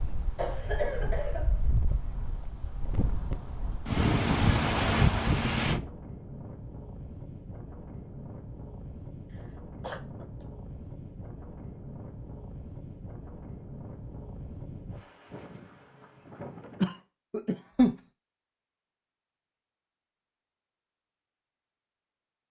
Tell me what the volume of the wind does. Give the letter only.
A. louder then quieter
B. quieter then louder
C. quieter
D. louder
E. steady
A.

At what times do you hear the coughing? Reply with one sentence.
You can hear the coughing from 0.3 to 1.6 s, from 9.8 to 10.2 s and from 16.8 to 17.9 s.